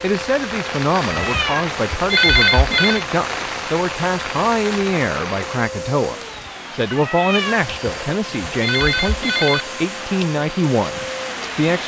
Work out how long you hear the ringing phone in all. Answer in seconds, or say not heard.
4 s.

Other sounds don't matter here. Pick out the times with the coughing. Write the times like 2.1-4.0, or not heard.
not heard.